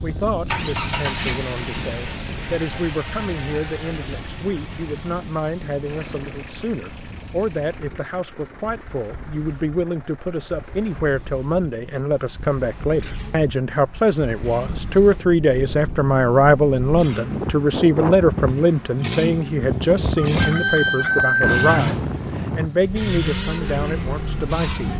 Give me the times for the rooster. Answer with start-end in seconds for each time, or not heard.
20.1-21.6.